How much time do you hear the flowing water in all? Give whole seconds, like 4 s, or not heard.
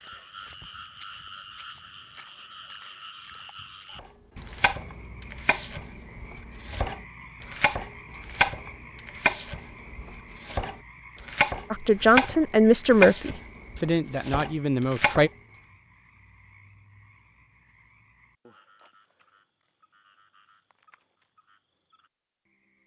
not heard.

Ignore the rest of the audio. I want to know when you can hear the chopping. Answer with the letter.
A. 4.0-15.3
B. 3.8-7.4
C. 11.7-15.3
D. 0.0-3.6
A.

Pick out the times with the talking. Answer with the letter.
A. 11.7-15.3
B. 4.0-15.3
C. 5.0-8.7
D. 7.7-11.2
A.